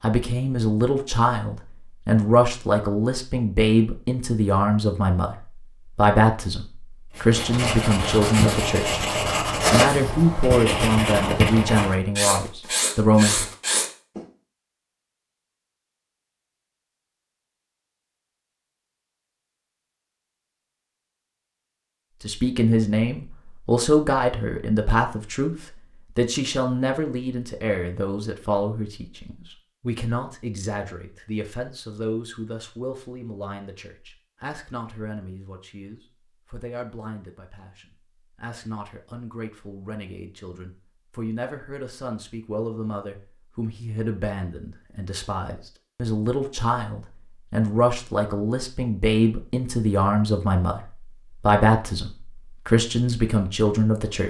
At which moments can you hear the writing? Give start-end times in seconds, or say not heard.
7.2-14.2.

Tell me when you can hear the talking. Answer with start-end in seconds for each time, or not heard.
0.0-9.0, 9.7-13.4, 22.2-54.2.